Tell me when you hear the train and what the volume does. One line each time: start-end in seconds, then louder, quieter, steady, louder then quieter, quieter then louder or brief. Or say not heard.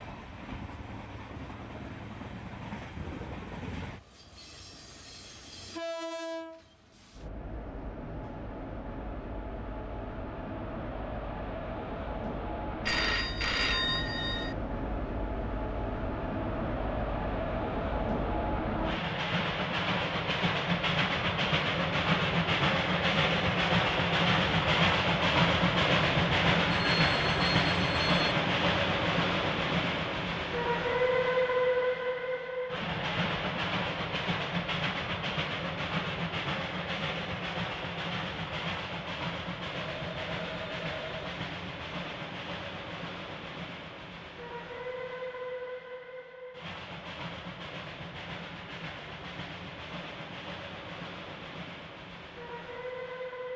0.0-53.5 louder then quieter.